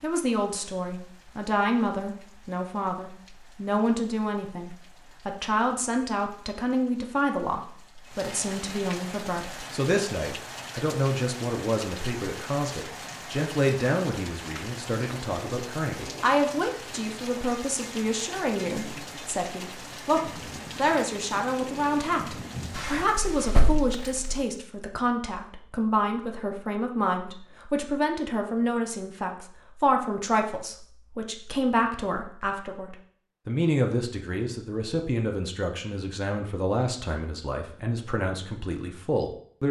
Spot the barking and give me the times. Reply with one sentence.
The barking can't be heard in this clip.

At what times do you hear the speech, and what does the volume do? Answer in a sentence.
You can hear the speech from 0.0 to 39.6 s, at a steady volume.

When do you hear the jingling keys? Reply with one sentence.
You can hear the jingling keys from 22.8 to 24.4 s.